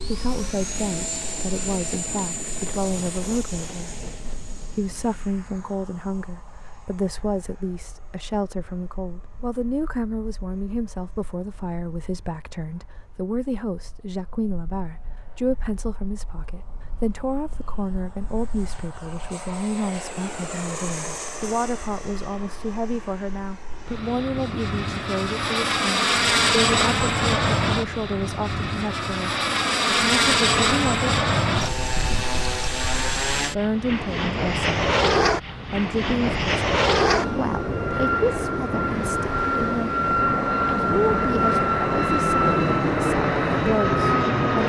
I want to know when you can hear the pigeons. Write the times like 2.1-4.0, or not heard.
not heard.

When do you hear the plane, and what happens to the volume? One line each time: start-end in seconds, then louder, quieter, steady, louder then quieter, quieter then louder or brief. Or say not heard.
0.0-44.6 quieter then louder.